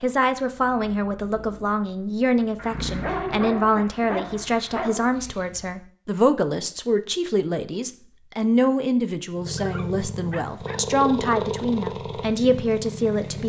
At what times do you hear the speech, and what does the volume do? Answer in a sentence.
You can hear the speech from 0.0 to 13.4 s, at a steady volume.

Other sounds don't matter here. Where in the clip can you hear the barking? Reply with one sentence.
You can hear the barking from 2.5 to 5.2 s and from 9.6 to 10.8 s.